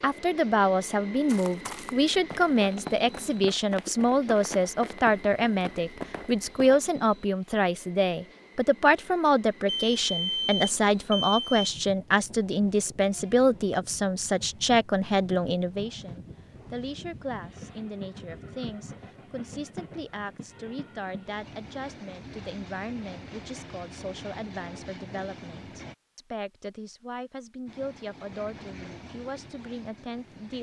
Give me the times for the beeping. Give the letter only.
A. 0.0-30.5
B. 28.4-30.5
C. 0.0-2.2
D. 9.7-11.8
D.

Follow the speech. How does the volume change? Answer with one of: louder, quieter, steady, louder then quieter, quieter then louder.
quieter.